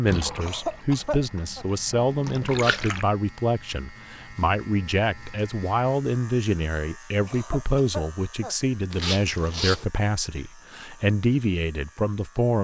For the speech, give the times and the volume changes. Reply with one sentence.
The speech can be heard from 0.0 to 12.5 s, at a steady volume.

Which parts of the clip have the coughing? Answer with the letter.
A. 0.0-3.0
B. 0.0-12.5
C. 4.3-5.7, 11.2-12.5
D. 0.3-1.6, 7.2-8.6
D.